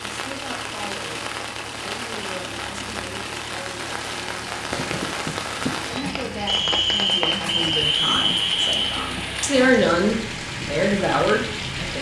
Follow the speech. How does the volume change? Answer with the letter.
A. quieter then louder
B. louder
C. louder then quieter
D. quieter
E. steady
B.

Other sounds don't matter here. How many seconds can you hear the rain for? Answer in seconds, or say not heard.
12 s.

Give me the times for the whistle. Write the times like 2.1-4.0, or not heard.
6.5-9.1.